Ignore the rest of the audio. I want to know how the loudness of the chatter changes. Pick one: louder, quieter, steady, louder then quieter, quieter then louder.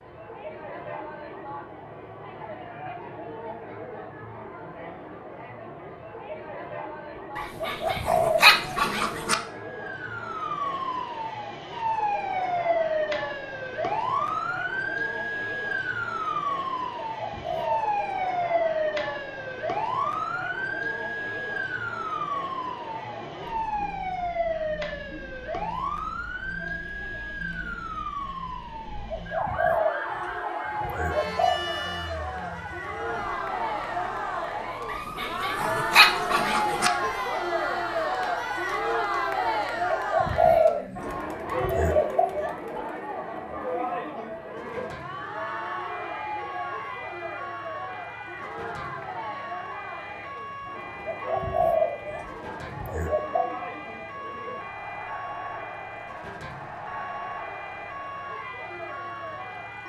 louder then quieter.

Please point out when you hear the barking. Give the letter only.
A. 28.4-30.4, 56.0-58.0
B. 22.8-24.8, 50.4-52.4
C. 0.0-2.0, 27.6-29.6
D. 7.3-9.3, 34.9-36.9
D.